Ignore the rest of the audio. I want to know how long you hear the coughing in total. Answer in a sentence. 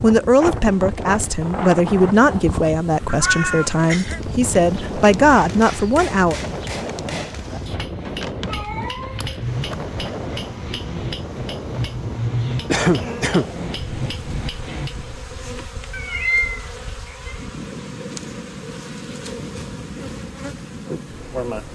The coughing can be heard for 2 seconds in total.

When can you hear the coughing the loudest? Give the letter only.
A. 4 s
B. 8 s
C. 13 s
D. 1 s
C.